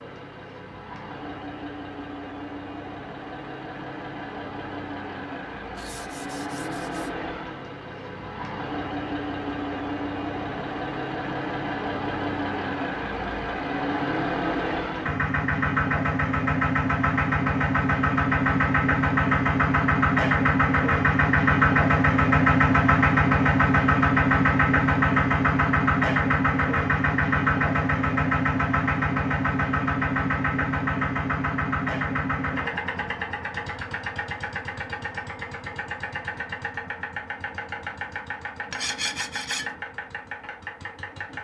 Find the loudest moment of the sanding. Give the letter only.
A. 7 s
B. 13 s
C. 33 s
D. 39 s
D.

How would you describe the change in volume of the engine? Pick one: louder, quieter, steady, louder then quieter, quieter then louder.
louder then quieter.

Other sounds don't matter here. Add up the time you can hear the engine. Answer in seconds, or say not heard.
41 s.